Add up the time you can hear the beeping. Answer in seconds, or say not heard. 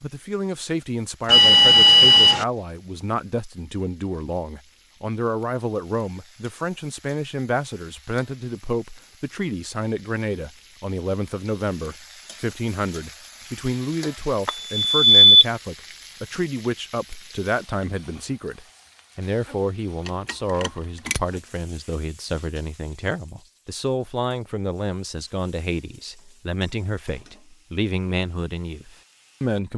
3 s.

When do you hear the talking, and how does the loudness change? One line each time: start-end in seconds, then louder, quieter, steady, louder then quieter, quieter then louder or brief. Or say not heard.
0.0-29.7 steady.